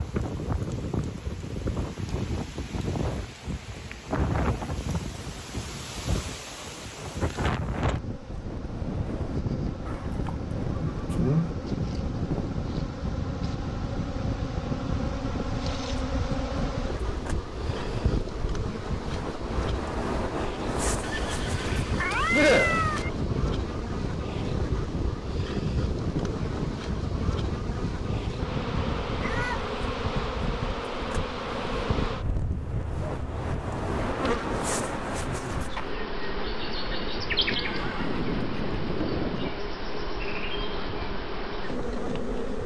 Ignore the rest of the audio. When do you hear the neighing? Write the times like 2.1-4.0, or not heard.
9.8-11.3, 21.0-23.1, 37.5-39.5.